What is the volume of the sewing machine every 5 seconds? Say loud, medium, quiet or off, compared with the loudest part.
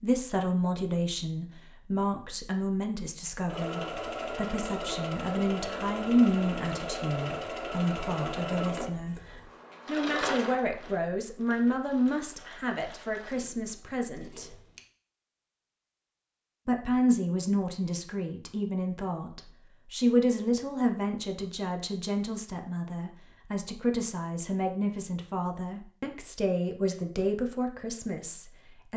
loud, loud, medium, off, off, off.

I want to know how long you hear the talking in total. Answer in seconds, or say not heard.
26 s.